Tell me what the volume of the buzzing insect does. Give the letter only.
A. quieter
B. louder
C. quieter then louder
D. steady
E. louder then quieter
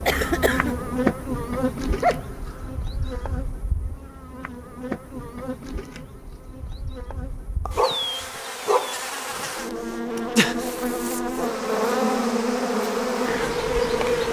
C.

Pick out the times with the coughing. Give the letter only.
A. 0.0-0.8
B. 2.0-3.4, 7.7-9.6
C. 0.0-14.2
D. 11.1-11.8
A.